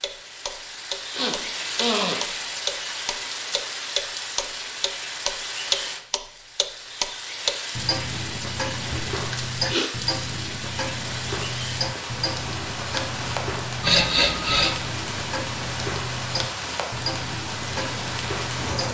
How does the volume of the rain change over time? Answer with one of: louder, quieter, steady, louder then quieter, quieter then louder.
steady.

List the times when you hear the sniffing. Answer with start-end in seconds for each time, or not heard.
1.1-2.2, 8.9-9.9, 13.8-14.8.